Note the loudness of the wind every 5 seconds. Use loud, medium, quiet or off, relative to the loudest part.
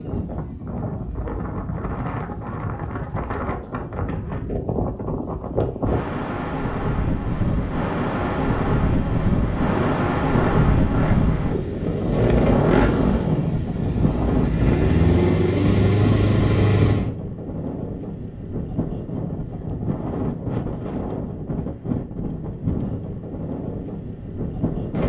medium, loud, loud, medium, medium.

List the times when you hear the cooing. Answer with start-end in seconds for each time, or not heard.
not heard.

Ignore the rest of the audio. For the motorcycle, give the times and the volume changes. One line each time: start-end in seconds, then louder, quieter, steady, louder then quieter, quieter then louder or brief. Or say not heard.
7.1-17.1 louder.